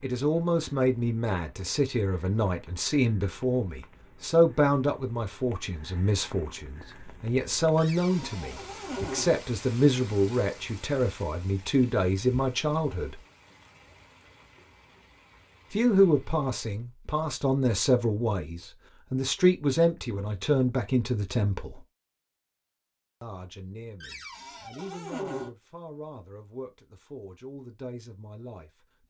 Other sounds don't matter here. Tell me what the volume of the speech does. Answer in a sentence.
The volume of the speech goes down.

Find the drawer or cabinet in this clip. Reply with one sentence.
You can hear the drawer or cabinet from 7.8 to 9.3 s and from 24.0 to 25.5 s.